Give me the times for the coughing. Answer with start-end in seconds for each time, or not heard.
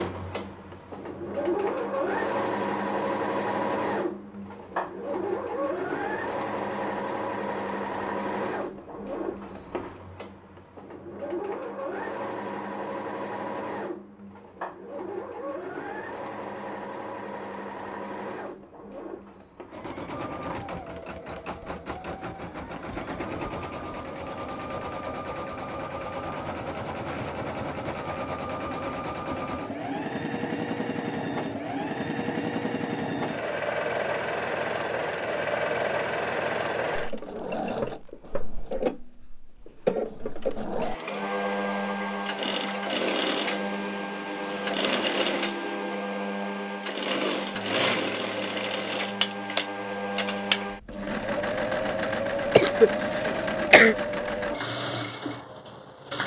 52.5-54.0.